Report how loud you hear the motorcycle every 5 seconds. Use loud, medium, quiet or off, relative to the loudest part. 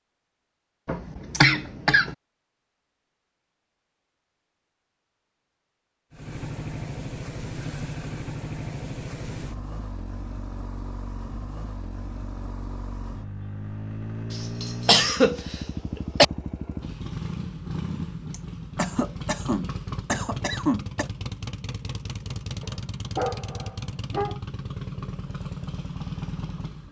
off, loud, loud, loud, loud, loud.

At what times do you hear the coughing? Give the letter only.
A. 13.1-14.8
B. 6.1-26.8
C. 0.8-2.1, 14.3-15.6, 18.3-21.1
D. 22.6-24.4
C.